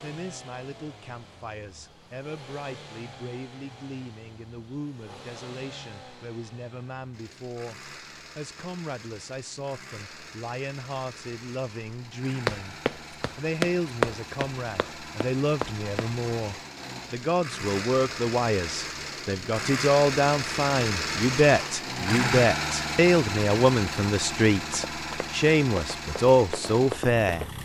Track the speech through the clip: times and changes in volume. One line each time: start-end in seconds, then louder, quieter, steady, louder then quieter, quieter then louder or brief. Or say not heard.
0.0-27.5 louder.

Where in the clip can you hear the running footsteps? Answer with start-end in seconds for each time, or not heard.
12.4-16.1, 24.7-27.6.